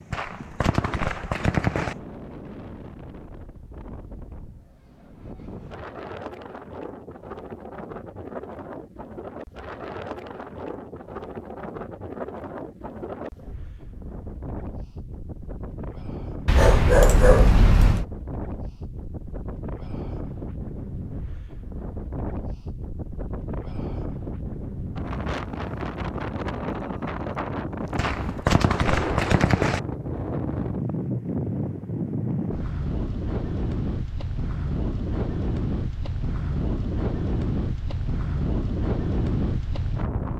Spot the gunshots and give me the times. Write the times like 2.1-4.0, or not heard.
0.1-1.9, 27.9-29.8.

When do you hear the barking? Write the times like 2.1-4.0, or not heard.
16.4-18.1.